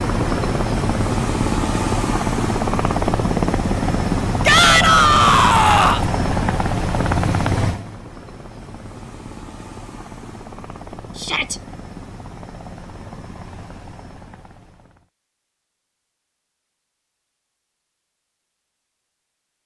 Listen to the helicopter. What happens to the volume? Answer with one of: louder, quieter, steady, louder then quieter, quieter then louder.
quieter.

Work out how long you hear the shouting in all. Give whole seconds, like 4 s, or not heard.
2 s.